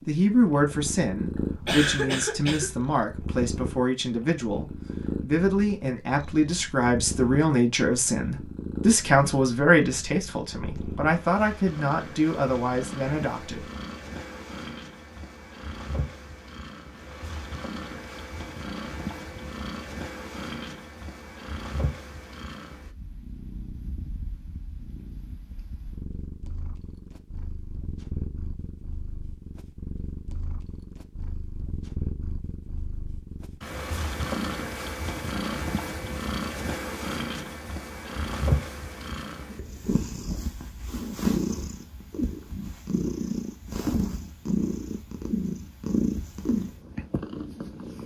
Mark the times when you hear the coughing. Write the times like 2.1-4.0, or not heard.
1.6-2.8.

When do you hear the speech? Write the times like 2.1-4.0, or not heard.
0.1-13.7.